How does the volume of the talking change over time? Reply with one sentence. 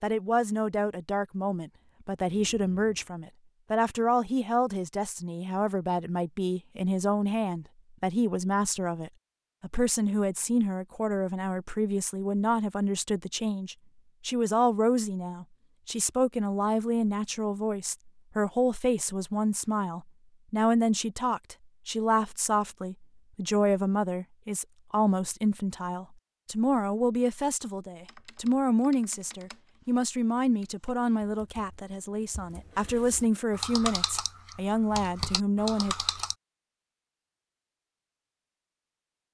The loudness of the talking stays about the same.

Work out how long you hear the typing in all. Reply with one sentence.
You can hear the typing for 8 seconds altogether.